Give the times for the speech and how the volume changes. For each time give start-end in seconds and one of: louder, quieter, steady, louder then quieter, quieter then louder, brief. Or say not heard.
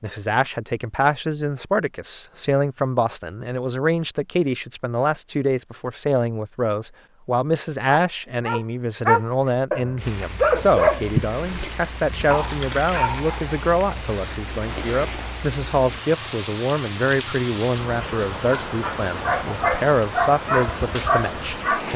0.0-21.9 steady.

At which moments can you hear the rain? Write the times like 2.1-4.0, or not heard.
9.9-21.9.